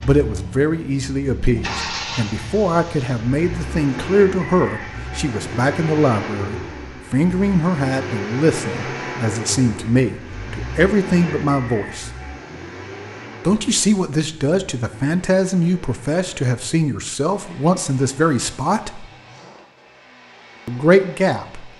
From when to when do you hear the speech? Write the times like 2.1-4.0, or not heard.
0.0-12.1, 13.4-19.1, 20.6-21.7.